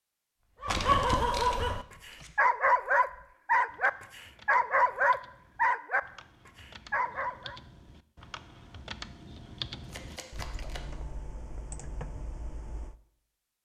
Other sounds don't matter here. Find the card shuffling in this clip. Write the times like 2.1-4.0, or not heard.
0.7-2.3, 9.8-10.8.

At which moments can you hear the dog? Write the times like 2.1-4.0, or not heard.
0.5-7.6.